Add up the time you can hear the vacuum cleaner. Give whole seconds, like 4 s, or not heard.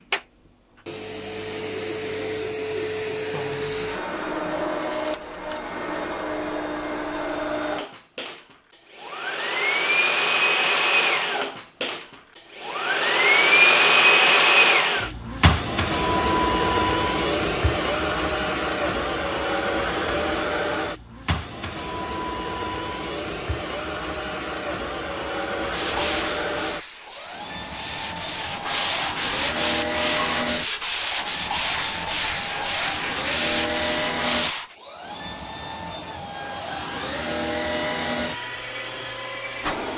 40 s.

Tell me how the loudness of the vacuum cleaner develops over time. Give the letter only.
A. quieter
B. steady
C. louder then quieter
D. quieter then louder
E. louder
C.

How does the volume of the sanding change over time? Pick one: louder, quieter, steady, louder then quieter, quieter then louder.
louder.